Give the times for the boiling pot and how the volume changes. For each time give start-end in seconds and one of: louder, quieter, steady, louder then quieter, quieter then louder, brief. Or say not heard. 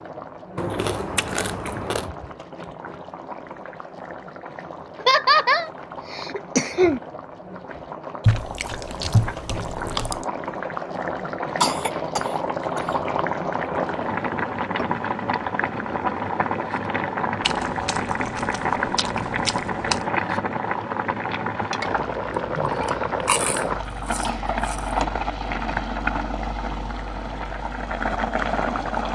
0.0-29.0 louder.